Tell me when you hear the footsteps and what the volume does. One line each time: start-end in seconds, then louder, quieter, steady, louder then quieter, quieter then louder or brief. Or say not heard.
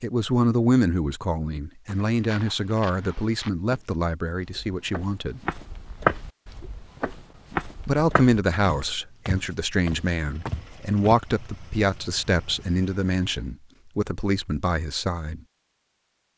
1.9-11.2 louder then quieter.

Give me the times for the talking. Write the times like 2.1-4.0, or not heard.
0.0-5.4, 7.8-15.4.